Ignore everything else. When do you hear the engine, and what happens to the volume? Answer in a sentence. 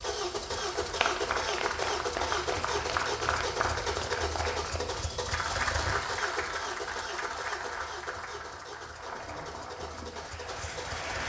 You can hear the engine from 0.0 to 11.2 s, getting quieter.